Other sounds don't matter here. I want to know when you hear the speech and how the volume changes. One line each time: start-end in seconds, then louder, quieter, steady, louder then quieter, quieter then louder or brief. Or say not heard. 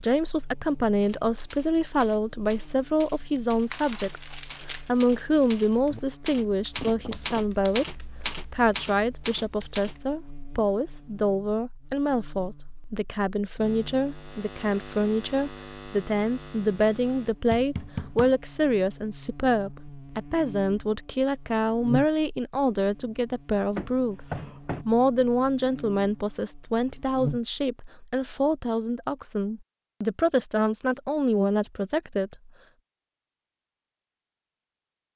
0.0-32.5 steady.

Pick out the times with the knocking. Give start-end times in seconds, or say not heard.
6.8-7.5, 17.5-18.4, 23.8-24.9.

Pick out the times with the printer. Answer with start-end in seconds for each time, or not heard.
not heard.